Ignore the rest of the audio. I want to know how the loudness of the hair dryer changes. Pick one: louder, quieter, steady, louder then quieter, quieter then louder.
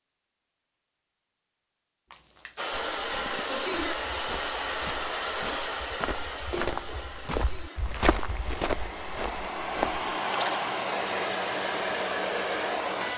quieter then louder.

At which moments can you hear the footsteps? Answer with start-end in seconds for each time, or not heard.
3.0-10.1.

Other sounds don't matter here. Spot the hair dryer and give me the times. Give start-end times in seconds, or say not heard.
2.5-13.1.